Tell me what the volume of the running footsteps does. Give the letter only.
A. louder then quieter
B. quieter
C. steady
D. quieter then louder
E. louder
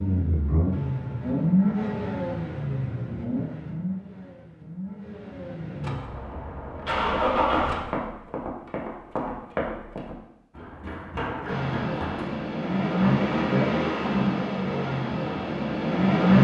D.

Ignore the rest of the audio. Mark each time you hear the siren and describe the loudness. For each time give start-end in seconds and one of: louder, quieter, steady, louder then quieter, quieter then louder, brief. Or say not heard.
not heard.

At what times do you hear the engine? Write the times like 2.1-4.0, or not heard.
0.0-8.0, 11.4-16.3.